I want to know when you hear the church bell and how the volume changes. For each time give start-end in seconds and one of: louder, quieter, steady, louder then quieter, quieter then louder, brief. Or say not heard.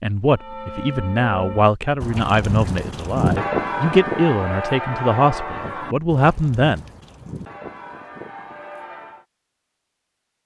0.3-9.2 louder then quieter.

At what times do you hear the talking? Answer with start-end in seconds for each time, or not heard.
0.0-6.8.